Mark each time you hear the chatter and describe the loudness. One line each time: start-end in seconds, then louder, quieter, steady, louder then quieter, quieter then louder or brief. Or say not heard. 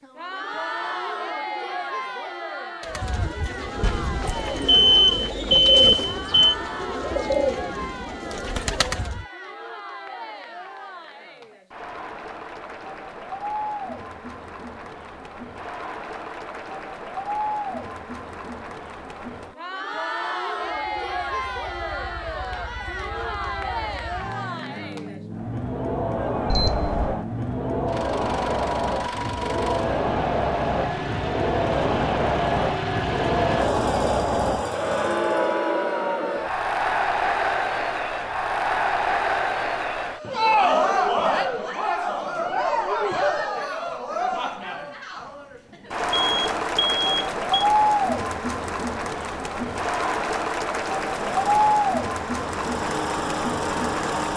0.0-54.3 louder.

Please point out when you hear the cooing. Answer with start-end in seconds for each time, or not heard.
2.8-9.2.